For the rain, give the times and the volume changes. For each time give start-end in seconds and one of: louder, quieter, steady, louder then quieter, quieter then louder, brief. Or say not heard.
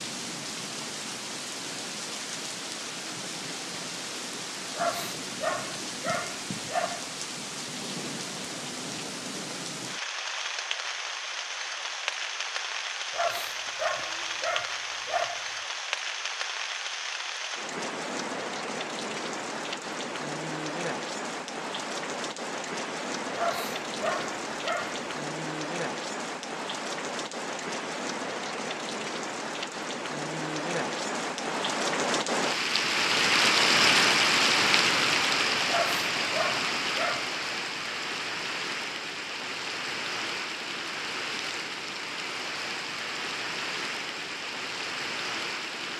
0.0-45.9 louder then quieter.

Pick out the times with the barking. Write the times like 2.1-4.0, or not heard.
4.8-7.1, 13.1-15.7, 23.4-25.1, 35.6-37.3.